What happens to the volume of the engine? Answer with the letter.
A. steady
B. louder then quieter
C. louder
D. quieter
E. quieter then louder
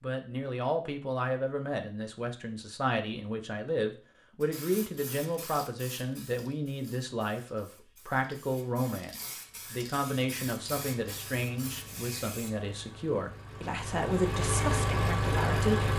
C.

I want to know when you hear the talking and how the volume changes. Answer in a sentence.
The talking can be heard from 0.0 to 15.9 s, at a steady volume.